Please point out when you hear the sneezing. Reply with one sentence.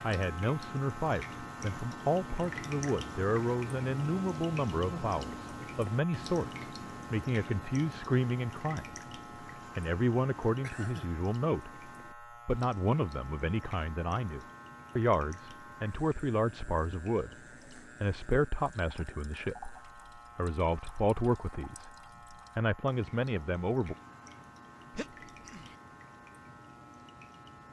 You can hear the sneezing from 4.8 to 5.5 s, from 10.6 to 11.2 s and from 24.9 to 25.8 s.